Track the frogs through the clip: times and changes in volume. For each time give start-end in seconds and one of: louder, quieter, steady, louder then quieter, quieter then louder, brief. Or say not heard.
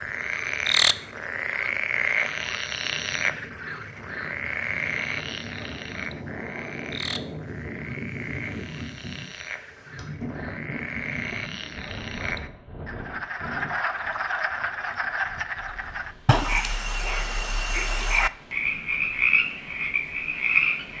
0.0-20.9 quieter then louder.